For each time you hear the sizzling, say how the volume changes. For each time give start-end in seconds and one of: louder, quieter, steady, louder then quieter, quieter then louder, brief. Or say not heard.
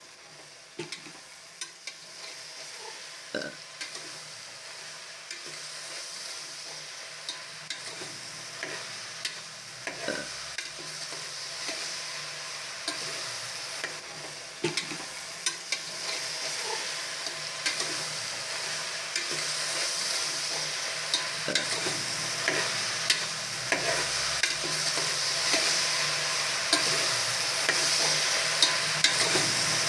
0.0-29.8 louder.